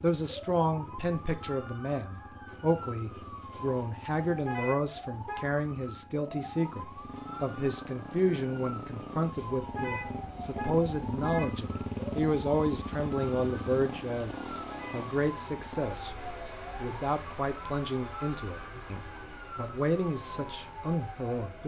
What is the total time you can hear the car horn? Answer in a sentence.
The car horn can be heard for 3 seconds in total.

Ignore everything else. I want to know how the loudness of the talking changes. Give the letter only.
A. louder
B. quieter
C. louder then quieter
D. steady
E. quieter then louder
D.